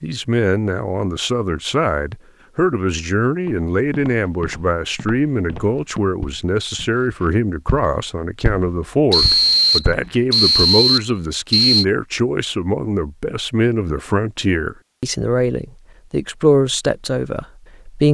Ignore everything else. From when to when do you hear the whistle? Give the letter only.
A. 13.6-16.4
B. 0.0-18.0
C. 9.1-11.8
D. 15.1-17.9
C.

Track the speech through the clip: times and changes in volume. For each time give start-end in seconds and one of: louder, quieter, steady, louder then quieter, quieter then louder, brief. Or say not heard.
0.0-18.0 steady.